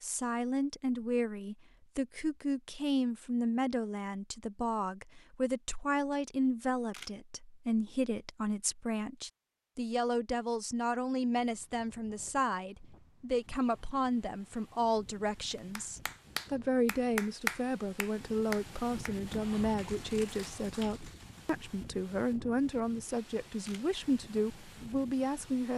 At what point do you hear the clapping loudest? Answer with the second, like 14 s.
17 s.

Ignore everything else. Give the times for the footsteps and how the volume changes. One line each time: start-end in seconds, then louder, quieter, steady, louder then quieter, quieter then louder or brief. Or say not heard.
not heard.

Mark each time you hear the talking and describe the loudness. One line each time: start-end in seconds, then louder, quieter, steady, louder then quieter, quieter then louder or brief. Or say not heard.
0.0-25.7 steady.